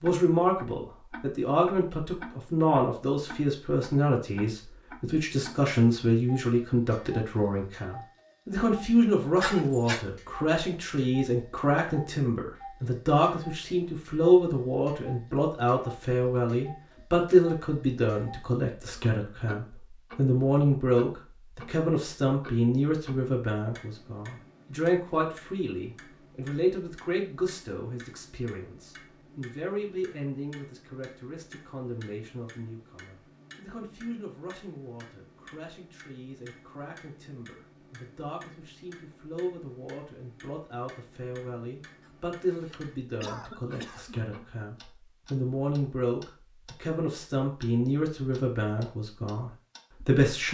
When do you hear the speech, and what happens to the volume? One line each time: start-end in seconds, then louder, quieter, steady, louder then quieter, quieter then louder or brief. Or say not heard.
0.0-50.4 quieter then louder.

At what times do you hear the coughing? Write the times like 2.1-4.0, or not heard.
9.4-10.0, 42.0-44.2.